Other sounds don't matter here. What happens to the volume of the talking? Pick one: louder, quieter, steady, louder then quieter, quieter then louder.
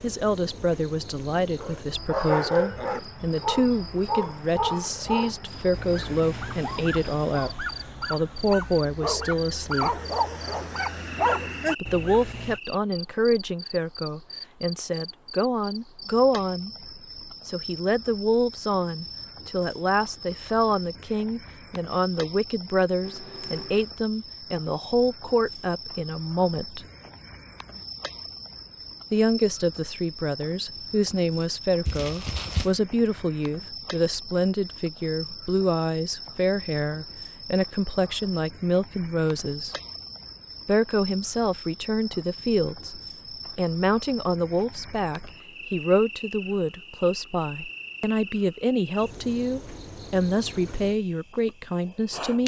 steady.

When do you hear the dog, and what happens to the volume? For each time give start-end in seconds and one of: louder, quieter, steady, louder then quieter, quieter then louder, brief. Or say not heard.
1.6-12.6 quieter then louder.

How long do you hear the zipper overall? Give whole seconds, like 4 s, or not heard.
2 s.